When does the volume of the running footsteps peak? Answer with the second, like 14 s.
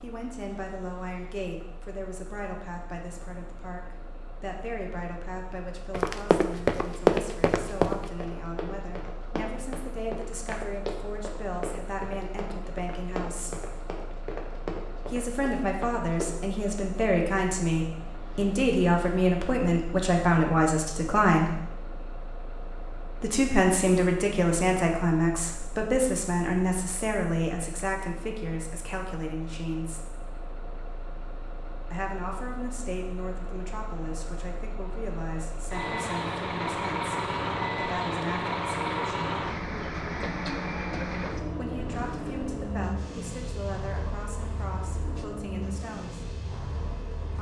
7 s.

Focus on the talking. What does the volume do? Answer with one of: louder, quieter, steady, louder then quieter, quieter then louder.
louder then quieter.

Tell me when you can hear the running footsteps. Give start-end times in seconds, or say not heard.
5.9-16.4.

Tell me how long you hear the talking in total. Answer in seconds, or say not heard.
39 s.